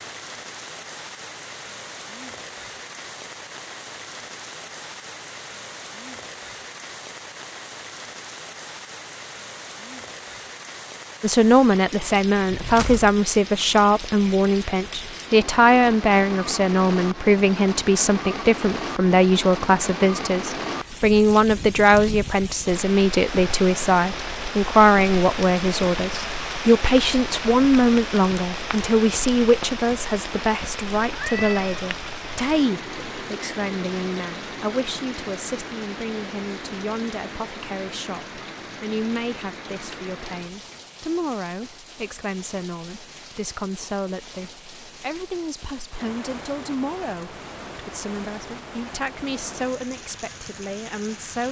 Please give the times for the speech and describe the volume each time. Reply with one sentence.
The speech can be heard from 11.2 to 51.4 s, getting quieter.